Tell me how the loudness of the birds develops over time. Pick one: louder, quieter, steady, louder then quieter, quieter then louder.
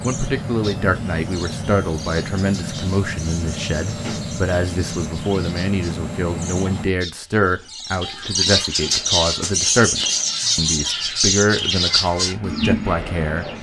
louder.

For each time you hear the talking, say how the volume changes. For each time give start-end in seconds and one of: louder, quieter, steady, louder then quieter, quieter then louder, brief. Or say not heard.
0.0-13.4 steady.